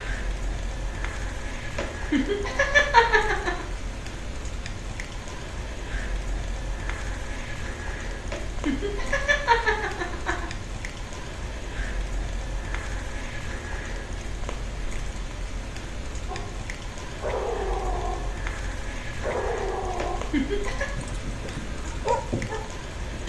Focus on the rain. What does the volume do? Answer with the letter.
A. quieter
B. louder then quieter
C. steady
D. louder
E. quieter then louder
C.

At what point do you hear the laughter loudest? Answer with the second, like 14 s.
3 s.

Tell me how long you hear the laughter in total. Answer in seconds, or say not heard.
5 s.